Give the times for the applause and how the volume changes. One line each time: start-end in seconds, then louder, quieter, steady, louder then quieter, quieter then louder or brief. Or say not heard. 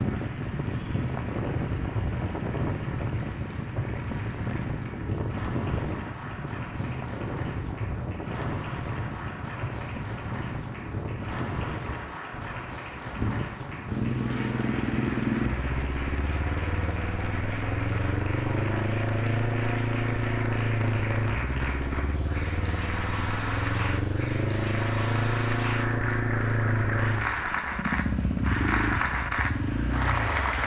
0.0-30.6 louder.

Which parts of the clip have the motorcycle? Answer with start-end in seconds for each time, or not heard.
13.8-30.6.